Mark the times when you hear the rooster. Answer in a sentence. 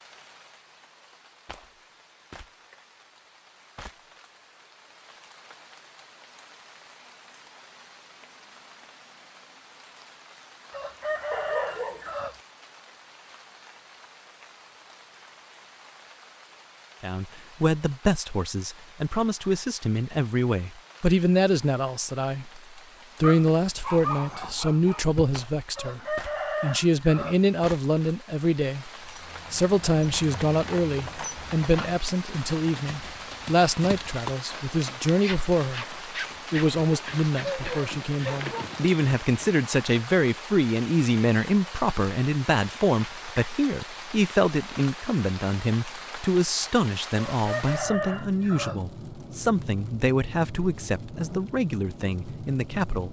The rooster can be heard from 10.7 to 12.3 s, from 25.8 to 27.4 s and from 47.1 to 48.8 s.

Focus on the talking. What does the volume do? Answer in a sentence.
The loudness of the talking stays about the same.